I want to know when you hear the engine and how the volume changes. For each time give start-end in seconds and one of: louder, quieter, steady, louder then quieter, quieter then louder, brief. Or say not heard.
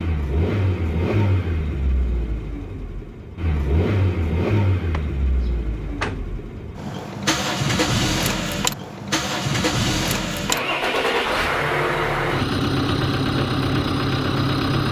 0.0-14.8 louder.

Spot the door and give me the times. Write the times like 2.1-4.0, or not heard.
4.9-6.2.